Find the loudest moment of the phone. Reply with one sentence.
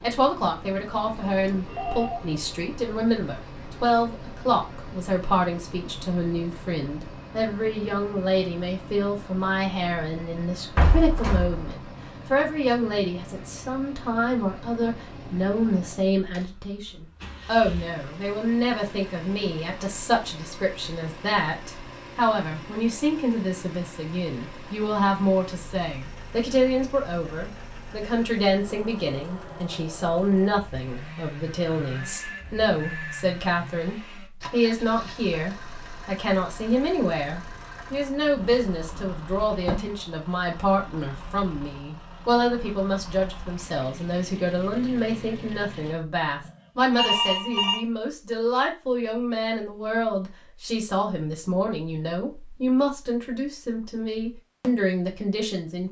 The loudest moment of the phone is at 47 seconds.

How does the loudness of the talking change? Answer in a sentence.
The loudness of the talking stays about the same.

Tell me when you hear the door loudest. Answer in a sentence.
The volume of the door peaks at 11 seconds.